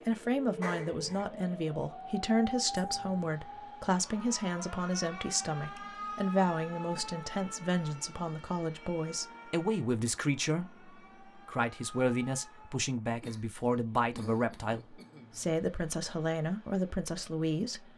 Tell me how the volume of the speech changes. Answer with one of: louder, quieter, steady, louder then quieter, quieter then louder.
steady.